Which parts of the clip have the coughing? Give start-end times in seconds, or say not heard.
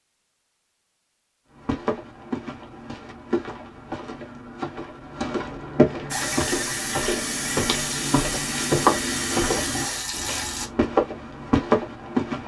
not heard.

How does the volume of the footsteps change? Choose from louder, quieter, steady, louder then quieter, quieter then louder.
louder.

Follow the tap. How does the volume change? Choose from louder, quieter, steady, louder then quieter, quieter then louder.
steady.